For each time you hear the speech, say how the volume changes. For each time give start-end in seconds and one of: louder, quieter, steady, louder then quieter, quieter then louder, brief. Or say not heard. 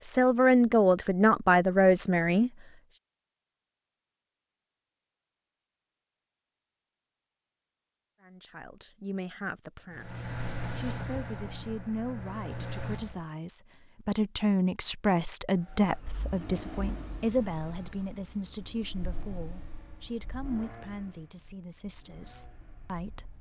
0.0-2.5 brief
8.2-23.3 louder then quieter.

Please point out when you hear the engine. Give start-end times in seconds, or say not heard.
9.9-13.3, 15.6-23.3.